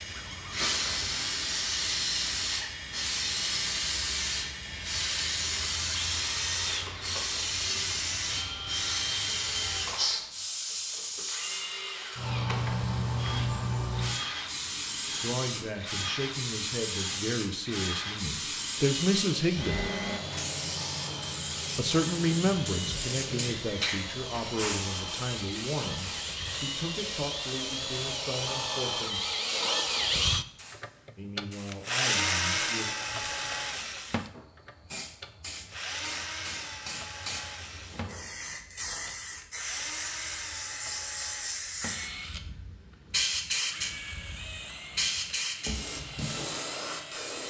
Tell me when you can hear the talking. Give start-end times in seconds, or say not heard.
15.2-19.9, 21.8-29.2, 31.1-33.0.